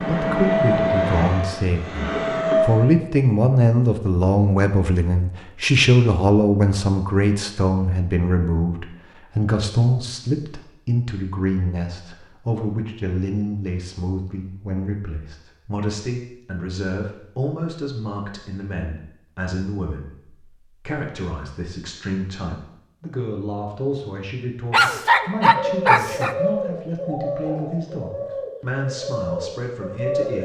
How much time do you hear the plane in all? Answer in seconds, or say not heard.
3 s.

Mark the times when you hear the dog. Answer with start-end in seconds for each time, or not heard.
24.7-26.4.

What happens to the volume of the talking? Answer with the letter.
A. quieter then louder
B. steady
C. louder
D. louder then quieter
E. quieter
E.